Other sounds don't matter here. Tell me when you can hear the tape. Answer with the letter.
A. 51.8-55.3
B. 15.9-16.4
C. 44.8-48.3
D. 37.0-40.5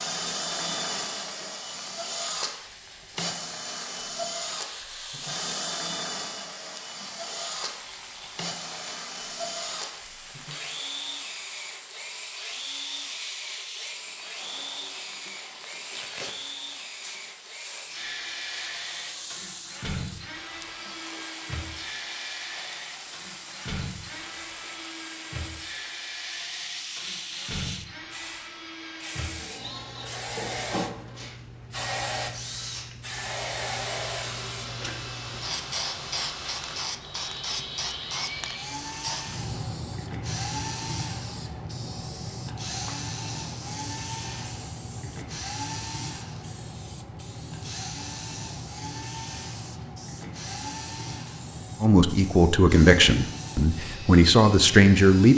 B.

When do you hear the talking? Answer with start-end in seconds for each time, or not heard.
51.8-55.3.